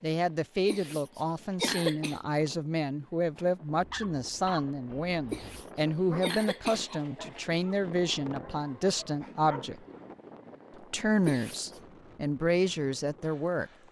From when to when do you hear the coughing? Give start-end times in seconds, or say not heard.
0.7-2.2, 5.3-7.0, 11.2-11.8.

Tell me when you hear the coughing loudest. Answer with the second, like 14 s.
2 s.